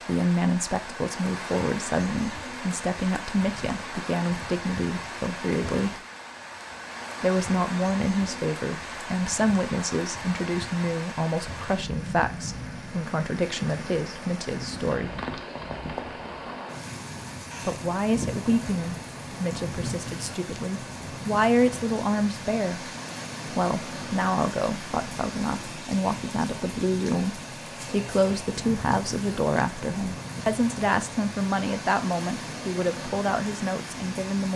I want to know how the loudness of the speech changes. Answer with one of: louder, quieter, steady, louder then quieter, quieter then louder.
steady.